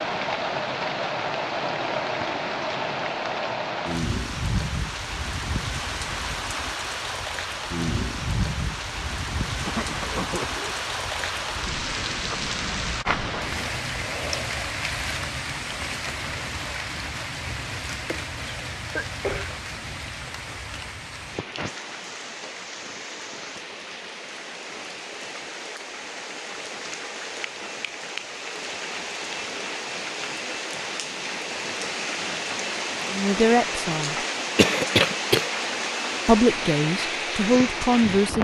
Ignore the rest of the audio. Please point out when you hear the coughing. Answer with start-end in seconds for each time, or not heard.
9.7-10.8, 18.1-19.5, 34.5-35.5.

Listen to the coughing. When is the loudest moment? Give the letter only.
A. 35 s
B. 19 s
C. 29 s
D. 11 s
A.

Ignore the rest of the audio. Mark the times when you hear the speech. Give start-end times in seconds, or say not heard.
33.0-34.1, 36.2-38.3.